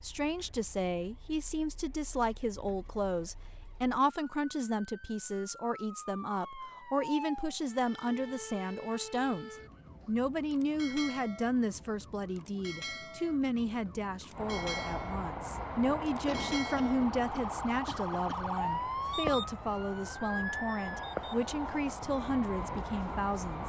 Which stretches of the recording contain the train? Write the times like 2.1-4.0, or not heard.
14.3-23.6.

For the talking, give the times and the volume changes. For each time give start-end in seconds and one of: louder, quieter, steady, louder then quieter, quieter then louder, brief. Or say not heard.
0.0-23.6 steady.